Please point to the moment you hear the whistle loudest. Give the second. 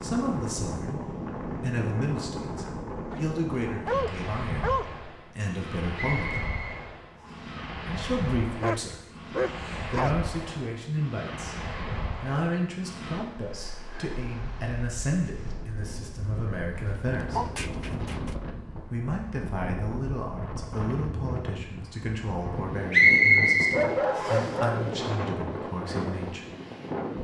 23 s.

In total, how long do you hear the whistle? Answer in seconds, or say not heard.
3 s.